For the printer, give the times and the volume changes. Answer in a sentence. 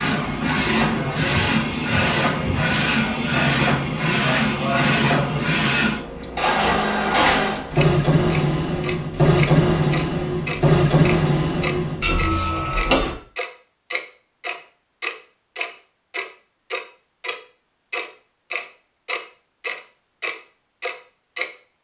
The printer can be heard from 0.0 to 13.2 s, at a steady volume.